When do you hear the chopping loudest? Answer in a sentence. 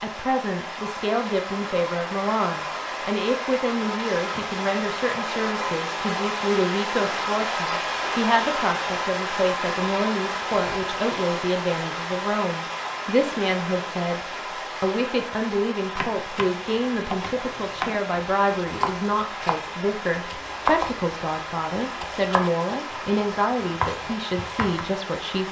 The volume of the chopping peaks at 21 seconds.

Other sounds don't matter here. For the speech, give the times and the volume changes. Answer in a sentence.
The speech can be heard from 0.0 to 14.2 s, at a steady volume; and from 14.8 to 25.4 s, at a steady volume.